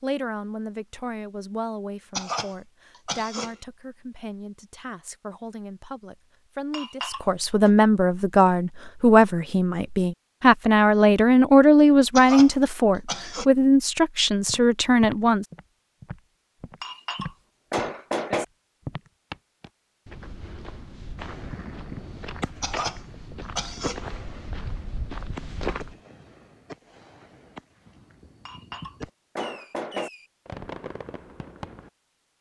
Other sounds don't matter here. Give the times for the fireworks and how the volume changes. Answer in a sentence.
You can hear the fireworks from 21.1 to 31.9 s, getting quieter then louder.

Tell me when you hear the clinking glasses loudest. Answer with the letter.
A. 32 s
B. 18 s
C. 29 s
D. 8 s
B.